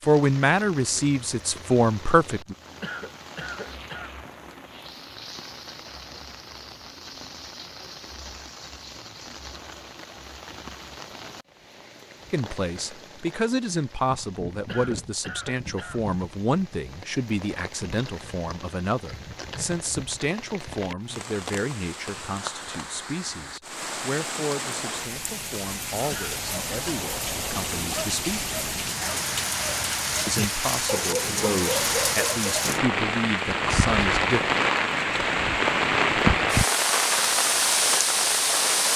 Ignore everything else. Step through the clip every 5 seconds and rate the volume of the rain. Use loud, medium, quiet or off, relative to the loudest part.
quiet, quiet, quiet, quiet, quiet, medium, loud, loud.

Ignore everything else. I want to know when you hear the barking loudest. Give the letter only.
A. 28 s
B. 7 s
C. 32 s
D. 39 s
C.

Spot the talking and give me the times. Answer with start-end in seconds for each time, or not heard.
0.1-2.5, 12.3-28.4, 30.2-34.4.